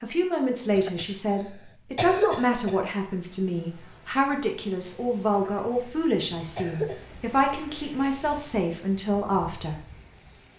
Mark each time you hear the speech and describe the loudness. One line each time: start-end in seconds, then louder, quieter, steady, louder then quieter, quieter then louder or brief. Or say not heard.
0.0-9.8 steady.